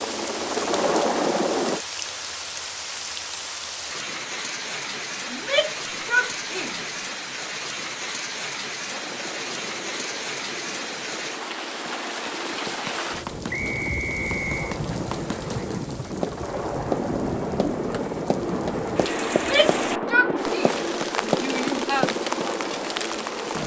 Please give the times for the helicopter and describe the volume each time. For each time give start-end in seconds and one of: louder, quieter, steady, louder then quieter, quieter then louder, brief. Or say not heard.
0.0-1.8 brief
8.8-23.6 louder.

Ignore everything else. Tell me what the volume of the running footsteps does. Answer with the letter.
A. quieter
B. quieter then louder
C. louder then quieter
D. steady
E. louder
E.